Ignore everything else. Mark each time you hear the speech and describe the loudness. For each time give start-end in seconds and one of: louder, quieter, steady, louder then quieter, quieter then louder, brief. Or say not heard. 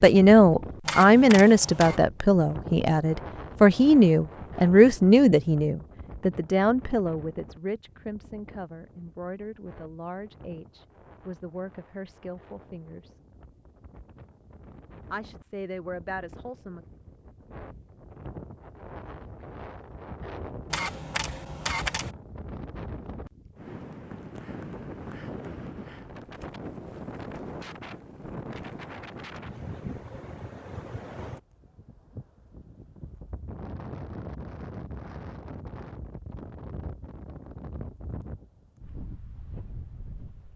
0.0-13.2 quieter
15.1-16.8 brief.